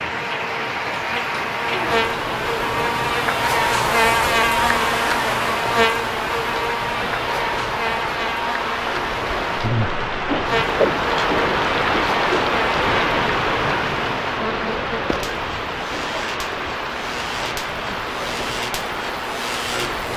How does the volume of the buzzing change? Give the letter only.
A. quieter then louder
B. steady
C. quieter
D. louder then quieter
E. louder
C.